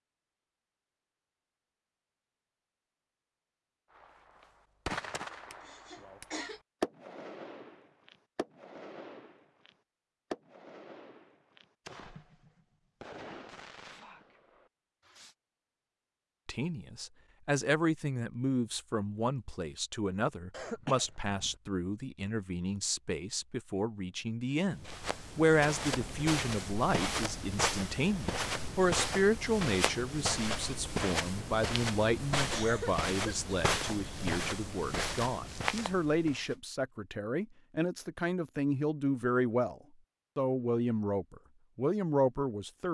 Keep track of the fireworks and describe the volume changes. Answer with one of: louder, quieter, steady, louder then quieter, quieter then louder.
quieter.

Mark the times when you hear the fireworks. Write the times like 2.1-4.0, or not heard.
3.9-15.3.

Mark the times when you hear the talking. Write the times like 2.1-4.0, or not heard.
16.4-42.8.